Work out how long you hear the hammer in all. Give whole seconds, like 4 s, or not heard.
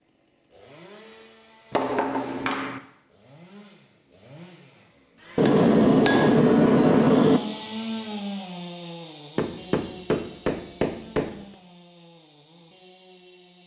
5 s.